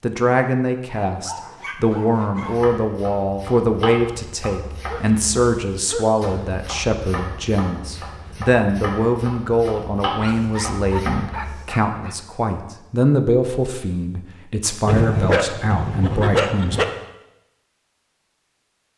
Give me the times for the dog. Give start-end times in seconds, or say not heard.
1.1-2.6, 4.8-6.3, 10.2-12.2, 14.8-16.9.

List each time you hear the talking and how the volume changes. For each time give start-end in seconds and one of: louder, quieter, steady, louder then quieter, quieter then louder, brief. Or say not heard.
0.0-16.8 steady.